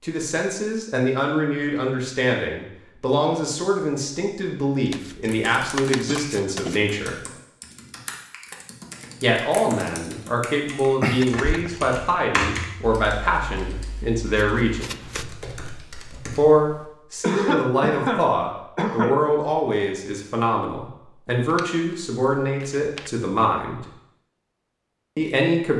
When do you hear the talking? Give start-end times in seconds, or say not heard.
0.0-7.2, 9.2-14.9, 16.4-23.9, 25.1-25.7.